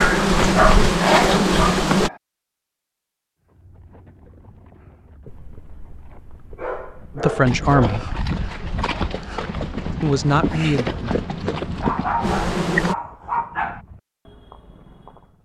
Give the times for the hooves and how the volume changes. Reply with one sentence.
The hooves can be heard from 3.5 to 15.4 s, getting louder then quieter.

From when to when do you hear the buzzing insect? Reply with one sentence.
You can hear the buzzing insect from 0.0 to 2.1 s and from 8.3 to 12.9 s.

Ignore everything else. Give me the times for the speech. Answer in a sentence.
The speech can be heard from 7.2 to 8.1 s and from 10.0 to 11.4 s.